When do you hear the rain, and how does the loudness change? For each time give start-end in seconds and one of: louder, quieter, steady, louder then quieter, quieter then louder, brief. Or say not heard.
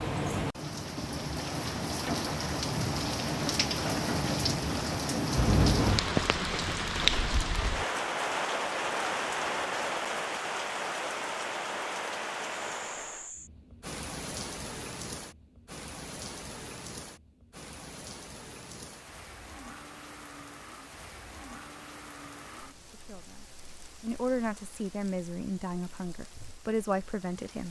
0.0-27.6 quieter.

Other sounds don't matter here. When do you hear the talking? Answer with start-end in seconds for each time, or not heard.
22.9-27.6.